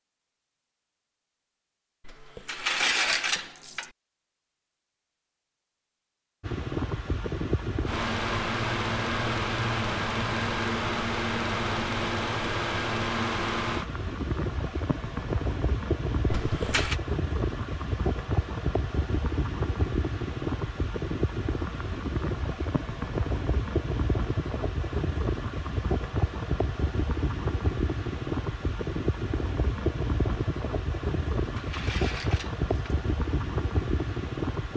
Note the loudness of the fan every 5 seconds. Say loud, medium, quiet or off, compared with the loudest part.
off, loud, loud, loud, loud, loud, loud.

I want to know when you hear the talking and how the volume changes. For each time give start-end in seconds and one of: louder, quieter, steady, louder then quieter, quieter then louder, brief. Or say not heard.
not heard.